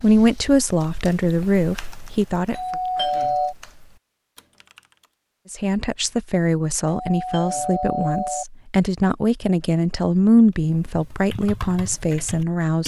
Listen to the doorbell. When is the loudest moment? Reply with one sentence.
The loudest moment of the doorbell is at 3 seconds.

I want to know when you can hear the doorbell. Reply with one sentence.
You can hear the doorbell from 2.5 to 3.5 s and from 6.8 to 8.4 s.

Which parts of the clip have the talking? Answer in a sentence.
The talking can be heard from 0.0 to 2.5 s and from 5.5 to 12.8 s.